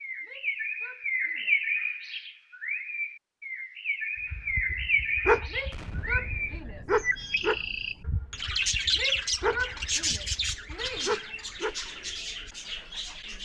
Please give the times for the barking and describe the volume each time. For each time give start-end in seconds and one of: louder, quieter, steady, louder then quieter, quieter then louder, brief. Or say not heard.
4.3-11.8 quieter.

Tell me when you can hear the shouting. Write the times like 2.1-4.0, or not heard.
0.2-1.6, 5.5-7.0, 8.9-11.2.